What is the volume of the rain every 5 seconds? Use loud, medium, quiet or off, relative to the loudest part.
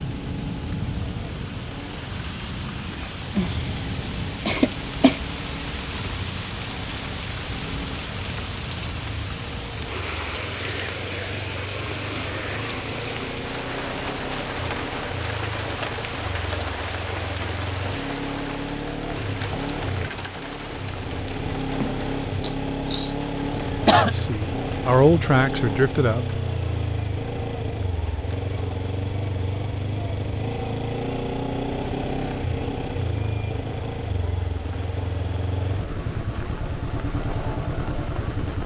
loud, loud, loud, loud, medium, quiet, quiet, medium.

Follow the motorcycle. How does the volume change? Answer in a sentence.
The loudness of the motorcycle goes up.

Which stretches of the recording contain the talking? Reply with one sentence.
The talking can be heard from 23.8 to 26.4 s.